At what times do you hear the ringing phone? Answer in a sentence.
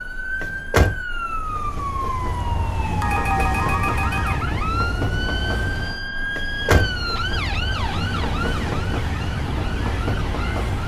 The ringing phone can be heard from 2.5 to 4.4 s.